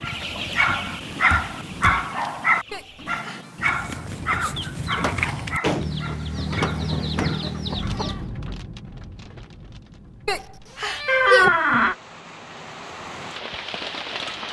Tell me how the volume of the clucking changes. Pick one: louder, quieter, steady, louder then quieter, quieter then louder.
quieter then louder.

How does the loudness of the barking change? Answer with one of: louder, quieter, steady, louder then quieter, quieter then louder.
quieter.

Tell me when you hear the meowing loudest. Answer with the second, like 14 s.
11 s.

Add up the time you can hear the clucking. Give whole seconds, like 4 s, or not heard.
8 s.